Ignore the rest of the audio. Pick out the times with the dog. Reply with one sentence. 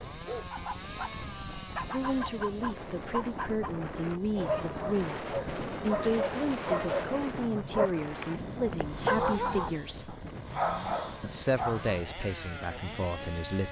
The dog can be heard from 0.1 to 11.8 s.